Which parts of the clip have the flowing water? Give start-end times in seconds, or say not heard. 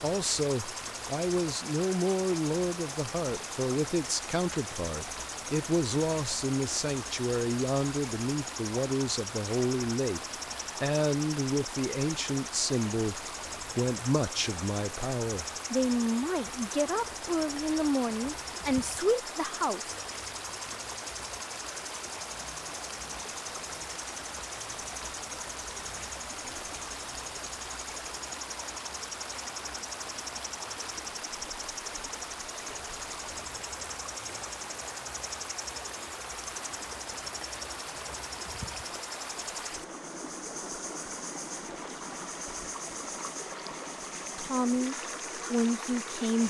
0.0-46.4.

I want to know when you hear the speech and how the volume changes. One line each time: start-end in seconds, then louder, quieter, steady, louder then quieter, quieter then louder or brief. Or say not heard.
0.0-19.9 steady
44.4-46.4 brief.